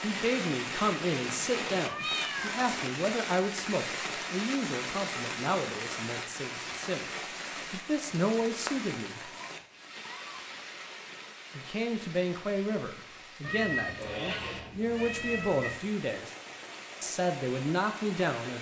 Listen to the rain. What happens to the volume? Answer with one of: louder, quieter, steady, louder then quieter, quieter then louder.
quieter.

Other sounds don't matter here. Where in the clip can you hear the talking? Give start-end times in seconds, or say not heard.
0.0-9.3, 11.6-16.3, 17.0-18.5.